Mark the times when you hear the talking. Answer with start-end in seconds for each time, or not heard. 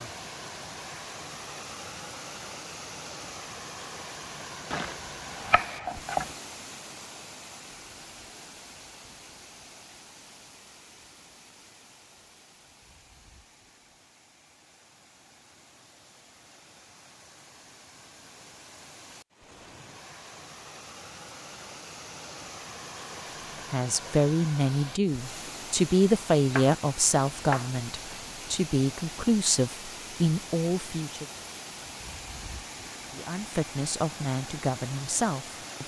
23.7-31.2, 33.1-35.8.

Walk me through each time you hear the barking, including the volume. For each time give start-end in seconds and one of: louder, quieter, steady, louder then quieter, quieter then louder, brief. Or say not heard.
not heard.